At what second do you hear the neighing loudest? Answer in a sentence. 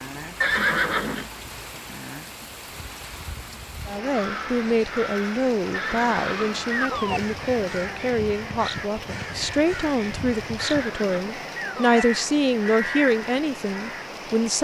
The volume of the neighing peaks at 1 second.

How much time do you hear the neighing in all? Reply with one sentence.
The neighing can be heard for 4 seconds in total.